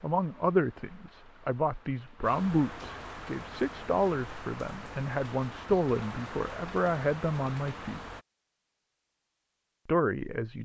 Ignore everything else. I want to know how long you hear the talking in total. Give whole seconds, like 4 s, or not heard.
9 s.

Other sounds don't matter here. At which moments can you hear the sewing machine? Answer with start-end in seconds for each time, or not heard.
not heard.